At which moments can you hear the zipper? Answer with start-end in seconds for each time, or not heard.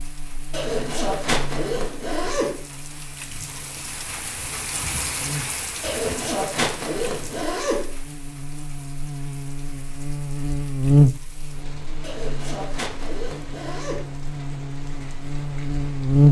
0.5-2.5, 5.8-7.8, 12.0-14.1.